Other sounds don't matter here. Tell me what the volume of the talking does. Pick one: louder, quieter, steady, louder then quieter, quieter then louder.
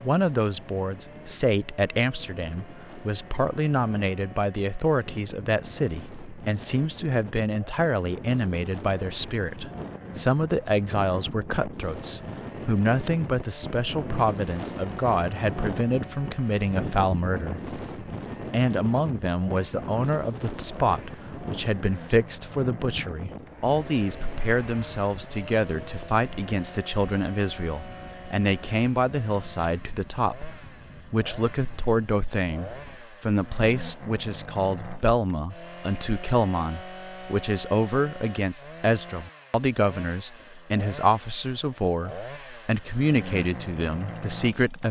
steady.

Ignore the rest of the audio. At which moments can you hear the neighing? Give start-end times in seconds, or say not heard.
not heard.